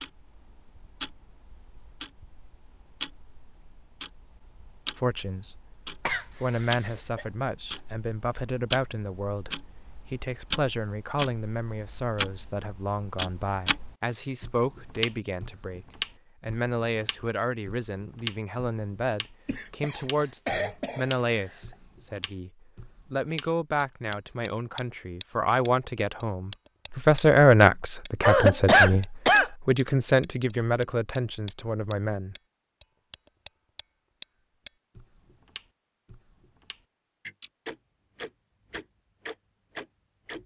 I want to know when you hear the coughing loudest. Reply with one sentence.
The loudest moment of the coughing is at 29 seconds.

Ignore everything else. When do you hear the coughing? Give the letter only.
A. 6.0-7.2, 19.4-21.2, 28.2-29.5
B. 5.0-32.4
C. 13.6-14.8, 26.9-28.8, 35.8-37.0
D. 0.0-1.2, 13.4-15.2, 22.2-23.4
A.